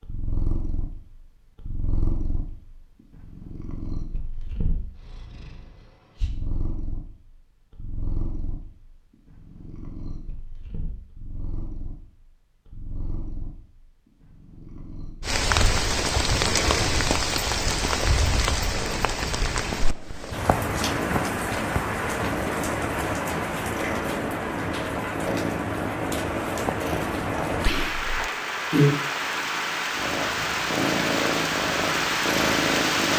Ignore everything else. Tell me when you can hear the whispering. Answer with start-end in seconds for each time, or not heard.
27.6-28.3.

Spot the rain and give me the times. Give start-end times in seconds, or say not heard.
15.2-33.1.